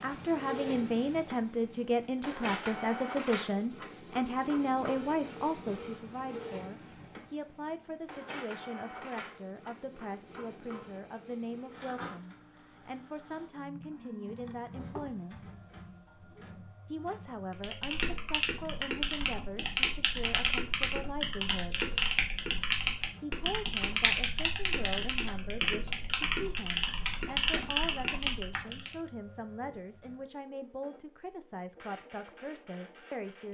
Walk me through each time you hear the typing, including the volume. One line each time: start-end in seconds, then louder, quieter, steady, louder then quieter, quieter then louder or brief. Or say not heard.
17.6-28.9 steady.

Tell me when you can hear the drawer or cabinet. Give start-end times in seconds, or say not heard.
14.2-15.1.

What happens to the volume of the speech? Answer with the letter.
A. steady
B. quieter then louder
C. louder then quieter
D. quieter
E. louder
D.